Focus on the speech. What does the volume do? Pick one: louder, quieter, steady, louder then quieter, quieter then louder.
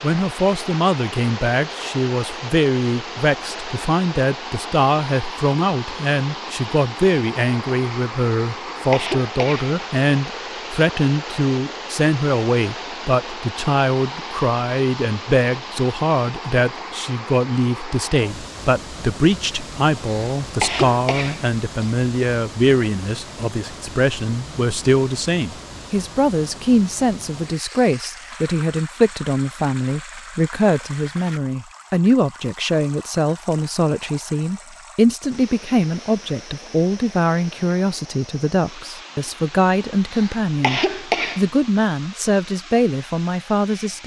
steady.